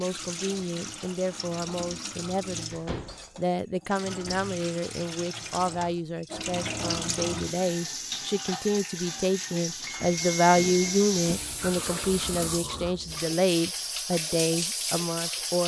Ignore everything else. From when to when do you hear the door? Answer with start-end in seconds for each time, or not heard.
2.7-4.5.